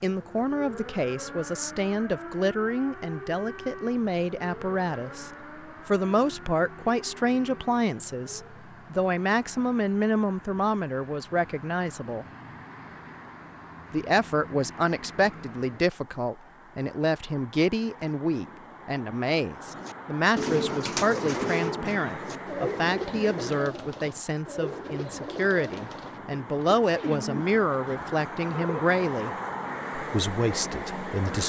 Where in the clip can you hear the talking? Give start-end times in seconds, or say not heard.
0.0-12.2, 13.9-29.3, 29.9-31.4.